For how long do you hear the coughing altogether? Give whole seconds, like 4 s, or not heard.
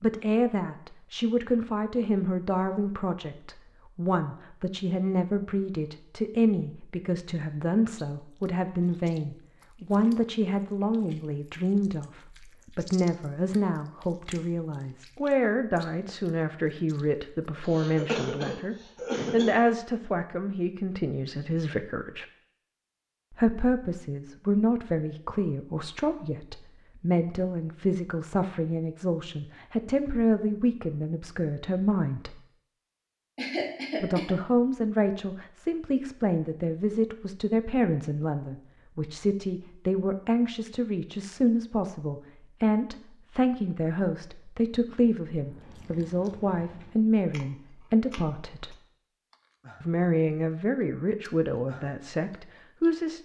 3 s.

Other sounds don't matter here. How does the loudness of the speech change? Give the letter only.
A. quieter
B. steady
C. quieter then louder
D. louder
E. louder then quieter
B.